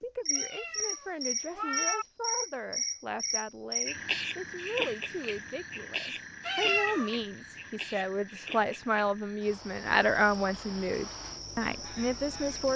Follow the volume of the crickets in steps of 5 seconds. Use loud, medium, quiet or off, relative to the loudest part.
loud, medium, medium.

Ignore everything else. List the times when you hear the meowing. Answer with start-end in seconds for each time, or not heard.
0.3-2.0, 6.5-7.2.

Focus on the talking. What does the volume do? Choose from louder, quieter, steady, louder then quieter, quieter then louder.
louder.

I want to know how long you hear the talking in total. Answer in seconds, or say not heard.
13 s.